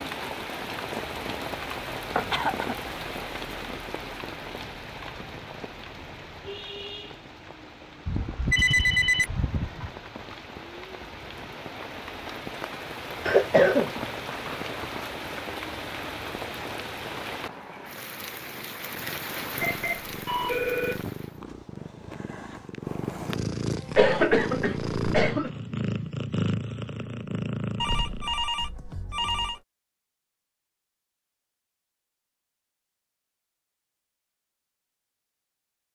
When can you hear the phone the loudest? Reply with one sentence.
The loudest moment of the phone is at 9 seconds.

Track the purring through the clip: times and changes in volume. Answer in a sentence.
The purring can be heard from 18.4 to 28.3 s, getting louder.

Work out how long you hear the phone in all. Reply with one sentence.
The phone can be heard for 5 seconds in total.